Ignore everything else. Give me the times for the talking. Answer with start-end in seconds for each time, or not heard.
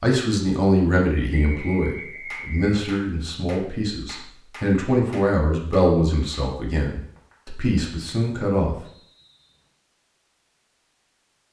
0.0-8.8.